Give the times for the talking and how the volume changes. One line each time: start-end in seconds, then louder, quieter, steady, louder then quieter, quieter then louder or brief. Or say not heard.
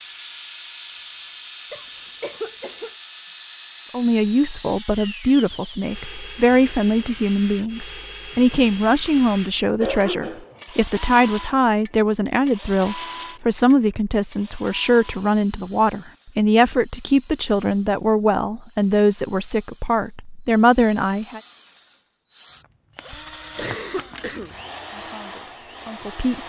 3.9-21.4 steady
24.9-26.4 brief.